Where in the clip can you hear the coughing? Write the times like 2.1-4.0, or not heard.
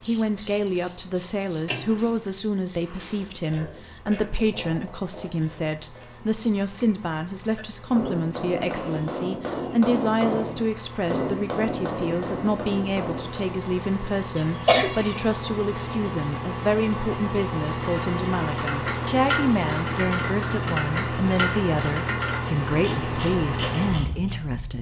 14.3-15.2.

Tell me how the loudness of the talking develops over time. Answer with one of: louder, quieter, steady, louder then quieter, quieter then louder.
steady.